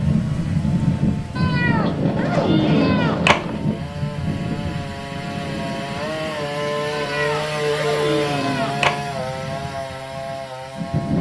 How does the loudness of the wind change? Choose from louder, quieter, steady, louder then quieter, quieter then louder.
quieter.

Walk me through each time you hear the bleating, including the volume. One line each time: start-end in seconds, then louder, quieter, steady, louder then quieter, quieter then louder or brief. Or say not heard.
not heard.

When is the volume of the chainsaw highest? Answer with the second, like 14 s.
8 s.